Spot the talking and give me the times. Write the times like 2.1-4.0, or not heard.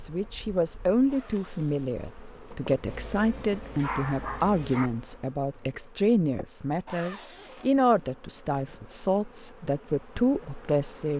0.0-11.1.